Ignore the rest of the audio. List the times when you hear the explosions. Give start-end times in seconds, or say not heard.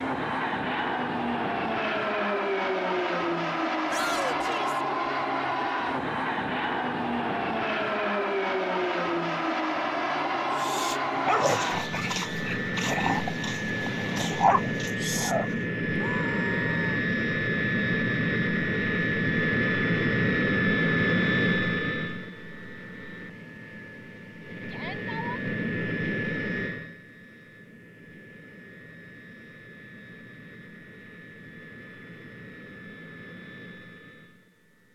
not heard.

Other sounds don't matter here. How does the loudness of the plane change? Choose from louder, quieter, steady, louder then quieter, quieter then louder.
quieter.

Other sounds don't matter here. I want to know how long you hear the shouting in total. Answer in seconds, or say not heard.
3 s.